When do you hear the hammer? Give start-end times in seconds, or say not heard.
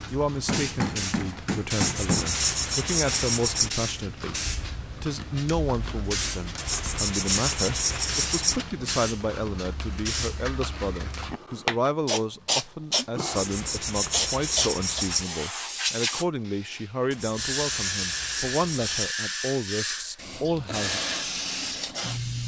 0.3-2.4.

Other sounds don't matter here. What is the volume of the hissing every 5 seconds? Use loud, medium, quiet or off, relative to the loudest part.
medium, medium, loud, loud, loud.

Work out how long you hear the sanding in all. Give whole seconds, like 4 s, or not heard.
8 s.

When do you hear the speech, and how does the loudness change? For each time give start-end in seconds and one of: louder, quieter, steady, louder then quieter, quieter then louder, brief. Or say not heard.
0.1-21.0 steady.